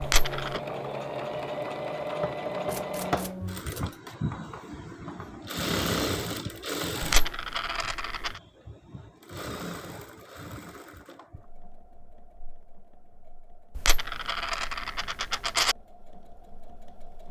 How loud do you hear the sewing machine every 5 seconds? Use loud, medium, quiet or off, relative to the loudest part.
loud, loud, quiet, quiet.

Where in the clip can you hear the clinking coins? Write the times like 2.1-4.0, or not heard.
0.0-0.6, 7.0-8.3, 13.8-15.8.